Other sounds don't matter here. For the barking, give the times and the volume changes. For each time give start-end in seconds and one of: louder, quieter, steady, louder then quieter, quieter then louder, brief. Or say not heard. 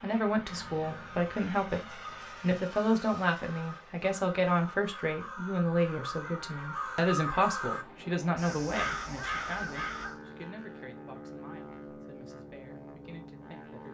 not heard.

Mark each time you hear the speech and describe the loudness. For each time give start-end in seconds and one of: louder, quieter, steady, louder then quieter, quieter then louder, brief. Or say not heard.
0.0-13.8 quieter.